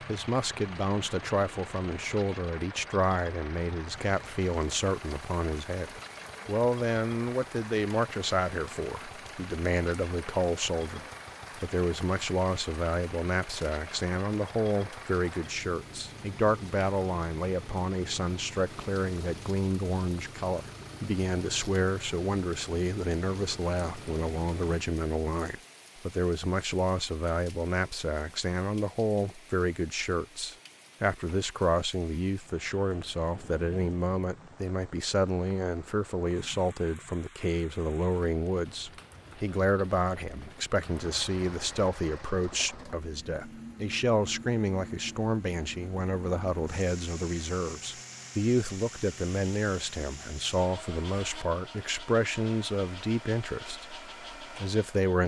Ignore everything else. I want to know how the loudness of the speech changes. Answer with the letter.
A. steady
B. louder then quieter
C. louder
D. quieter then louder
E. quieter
A.